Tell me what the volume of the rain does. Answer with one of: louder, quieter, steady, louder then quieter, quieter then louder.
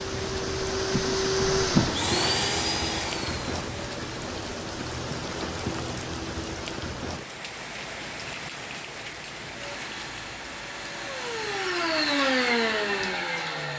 quieter.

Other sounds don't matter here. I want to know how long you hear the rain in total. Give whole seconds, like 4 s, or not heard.
14 s.